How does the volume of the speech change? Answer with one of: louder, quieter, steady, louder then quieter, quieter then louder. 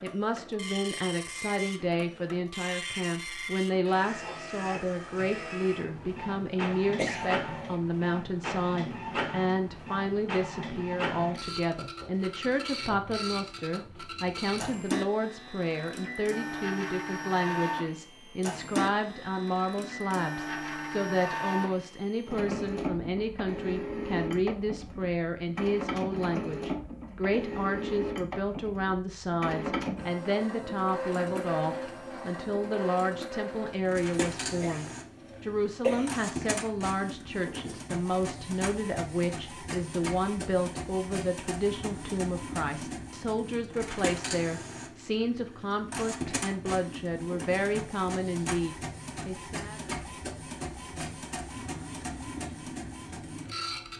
steady.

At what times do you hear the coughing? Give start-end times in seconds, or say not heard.
6.9-7.8, 34.5-36.1.